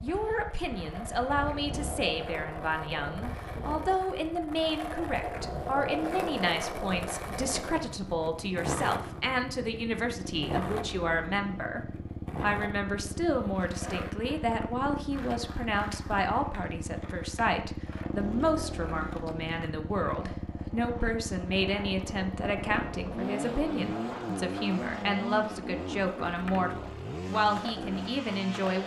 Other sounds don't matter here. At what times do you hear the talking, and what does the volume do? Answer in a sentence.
The talking can be heard from 0.0 to 28.8 s, at a steady volume.